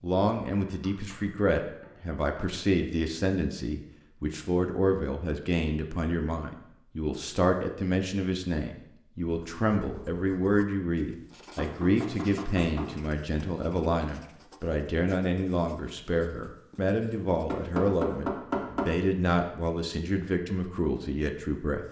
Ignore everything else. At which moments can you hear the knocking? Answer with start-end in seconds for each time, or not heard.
0.6-2.5, 11.6-12.9, 17.4-18.9.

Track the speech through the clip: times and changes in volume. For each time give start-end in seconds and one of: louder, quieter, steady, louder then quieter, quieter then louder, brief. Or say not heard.
0.0-21.8 steady.